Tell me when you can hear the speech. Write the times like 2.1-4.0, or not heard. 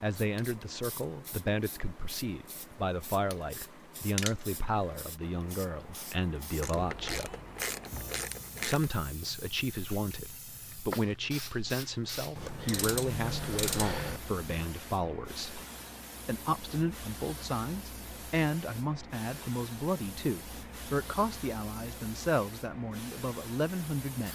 0.0-7.3, 8.7-15.6, 16.2-24.3.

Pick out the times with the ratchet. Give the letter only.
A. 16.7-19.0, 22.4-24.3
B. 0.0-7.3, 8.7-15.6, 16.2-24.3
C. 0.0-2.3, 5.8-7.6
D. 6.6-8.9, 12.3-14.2
D.